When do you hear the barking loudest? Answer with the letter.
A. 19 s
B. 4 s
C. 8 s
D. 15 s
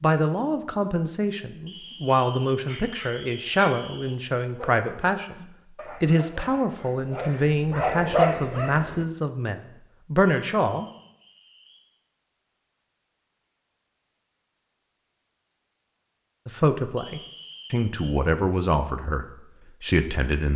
C.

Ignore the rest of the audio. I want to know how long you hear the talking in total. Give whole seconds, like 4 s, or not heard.
15 s.